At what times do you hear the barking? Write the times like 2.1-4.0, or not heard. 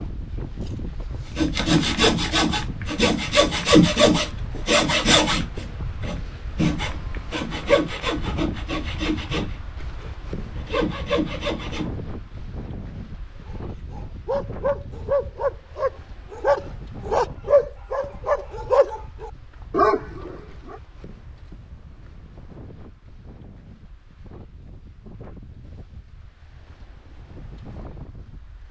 13.4-20.8.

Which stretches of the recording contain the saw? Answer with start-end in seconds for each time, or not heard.
1.4-11.9.